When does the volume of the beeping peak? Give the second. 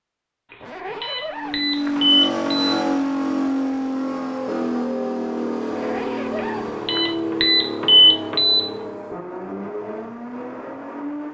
8 s.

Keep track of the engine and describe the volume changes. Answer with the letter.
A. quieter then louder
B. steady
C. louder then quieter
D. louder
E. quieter
E.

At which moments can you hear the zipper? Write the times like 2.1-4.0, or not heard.
0.6-2.1, 5.7-7.2.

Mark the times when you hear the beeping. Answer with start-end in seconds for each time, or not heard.
0.5-2.8, 6.3-8.7.